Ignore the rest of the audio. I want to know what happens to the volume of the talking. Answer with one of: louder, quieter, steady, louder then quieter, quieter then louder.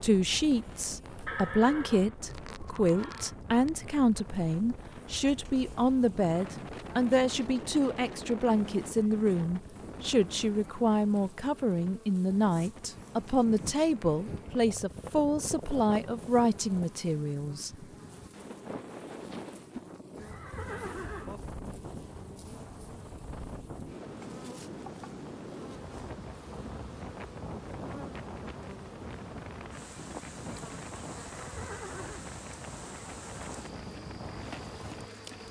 steady.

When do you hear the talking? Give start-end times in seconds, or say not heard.
0.0-17.9.